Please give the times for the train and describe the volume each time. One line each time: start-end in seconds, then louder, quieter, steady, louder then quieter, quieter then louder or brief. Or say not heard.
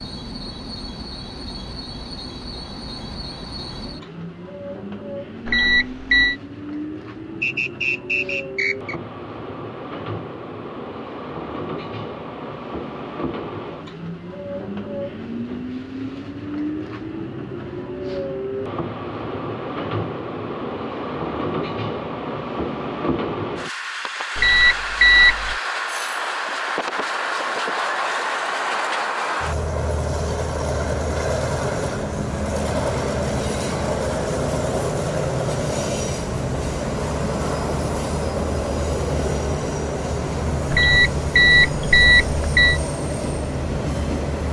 0.0-44.4 louder.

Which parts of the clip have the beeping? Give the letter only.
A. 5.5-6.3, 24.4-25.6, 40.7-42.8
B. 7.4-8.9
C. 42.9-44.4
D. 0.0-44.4
A.